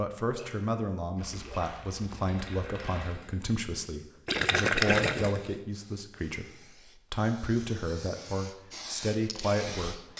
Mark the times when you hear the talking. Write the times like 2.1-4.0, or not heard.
0.0-10.1.